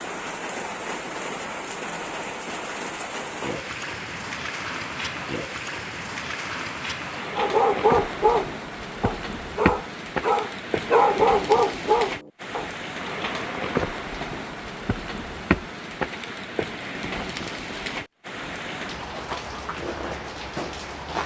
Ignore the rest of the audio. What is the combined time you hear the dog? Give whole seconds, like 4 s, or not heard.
5 s.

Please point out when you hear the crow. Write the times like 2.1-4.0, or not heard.
not heard.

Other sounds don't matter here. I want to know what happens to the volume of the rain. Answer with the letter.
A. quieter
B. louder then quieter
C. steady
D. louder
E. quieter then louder
C.